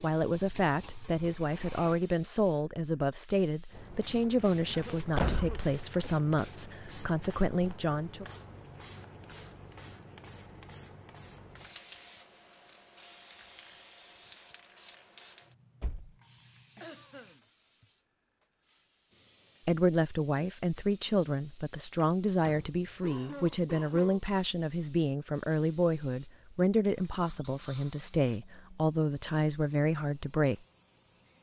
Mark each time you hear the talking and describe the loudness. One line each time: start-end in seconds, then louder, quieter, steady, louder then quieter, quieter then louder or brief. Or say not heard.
0.0-8.2 steady
19.6-30.6 steady.